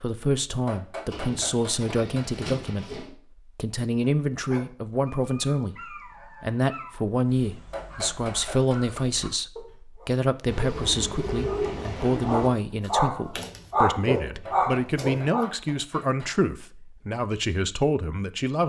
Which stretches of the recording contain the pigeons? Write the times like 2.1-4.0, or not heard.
1.1-3.1, 10.4-12.5.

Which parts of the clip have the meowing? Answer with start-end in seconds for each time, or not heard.
not heard.